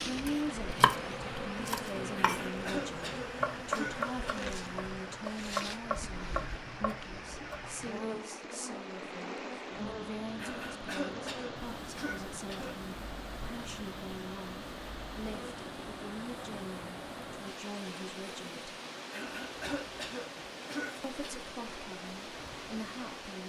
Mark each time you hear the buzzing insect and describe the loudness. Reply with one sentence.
The buzzing insect can be heard from 0.0 to 23.4 s, getting quieter.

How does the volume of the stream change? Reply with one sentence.
The volume of the stream stays about the same.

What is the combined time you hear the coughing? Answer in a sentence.
You can hear the coughing for 7 seconds altogether.